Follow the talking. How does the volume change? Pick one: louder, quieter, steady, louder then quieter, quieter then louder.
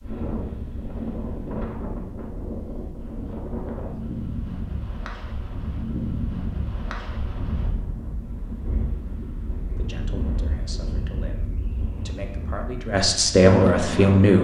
louder.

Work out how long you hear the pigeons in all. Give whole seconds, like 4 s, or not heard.
not heard.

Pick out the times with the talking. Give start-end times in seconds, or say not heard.
9.8-14.3.